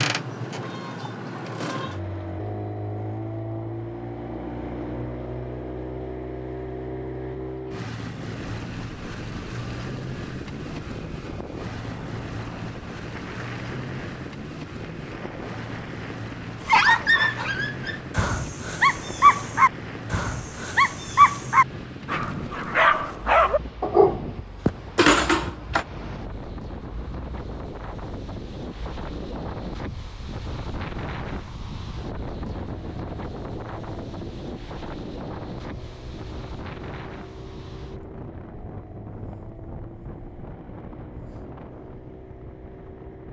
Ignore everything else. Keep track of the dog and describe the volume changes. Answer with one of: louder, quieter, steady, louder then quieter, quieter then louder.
louder.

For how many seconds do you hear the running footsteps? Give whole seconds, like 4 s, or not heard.
not heard.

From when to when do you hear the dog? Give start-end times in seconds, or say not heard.
16.6-25.9.